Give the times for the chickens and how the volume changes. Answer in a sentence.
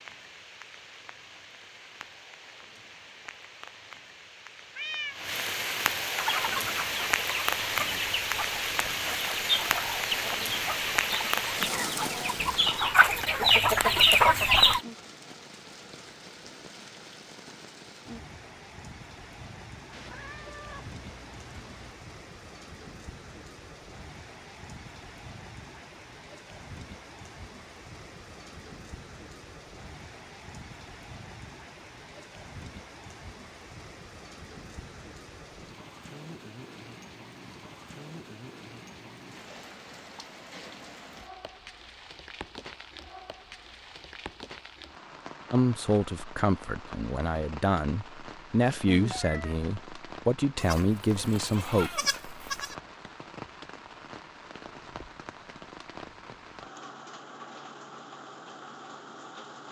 You can hear the chickens from 6.2 to 14.8 s, getting louder.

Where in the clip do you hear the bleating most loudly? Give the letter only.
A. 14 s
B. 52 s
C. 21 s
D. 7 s
B.